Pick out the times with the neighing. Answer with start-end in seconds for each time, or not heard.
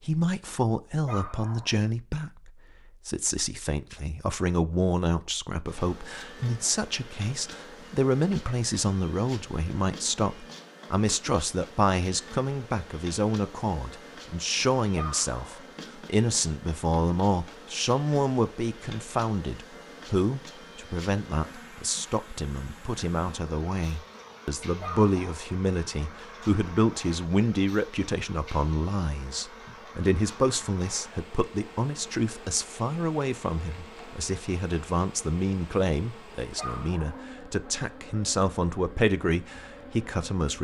not heard.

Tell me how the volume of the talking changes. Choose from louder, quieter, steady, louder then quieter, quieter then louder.
steady.